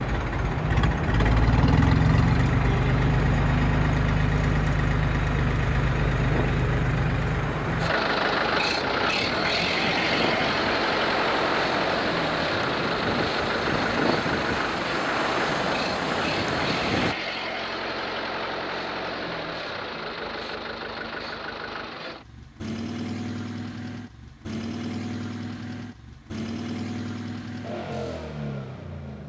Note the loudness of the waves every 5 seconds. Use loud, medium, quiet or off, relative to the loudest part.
medium, medium, loud, loud, off, off.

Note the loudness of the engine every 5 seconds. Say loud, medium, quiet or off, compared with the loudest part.
loud, loud, loud, medium, medium, medium.